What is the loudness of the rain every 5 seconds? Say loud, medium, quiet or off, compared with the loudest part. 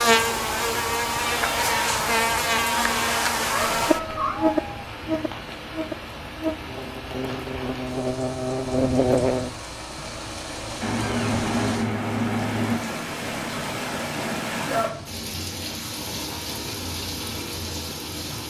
medium, medium, loud, loud.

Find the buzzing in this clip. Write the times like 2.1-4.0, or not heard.
0.0-9.5.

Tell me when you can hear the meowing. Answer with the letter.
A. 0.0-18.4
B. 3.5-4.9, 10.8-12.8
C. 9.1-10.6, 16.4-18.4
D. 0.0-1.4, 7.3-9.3
B.